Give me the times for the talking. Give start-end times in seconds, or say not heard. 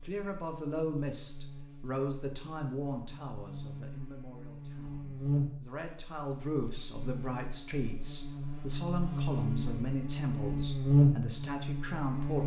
0.0-12.4.